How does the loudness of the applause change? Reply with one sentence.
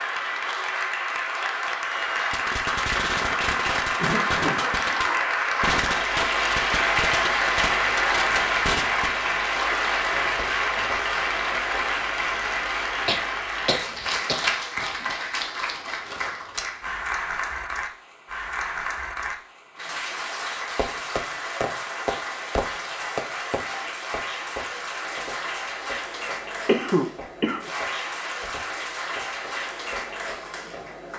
The volume of the applause goes down.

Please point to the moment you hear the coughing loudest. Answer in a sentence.
The loudest moment of the coughing is at 27 seconds.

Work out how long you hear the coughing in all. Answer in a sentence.
You can hear the coughing for 3 seconds altogether.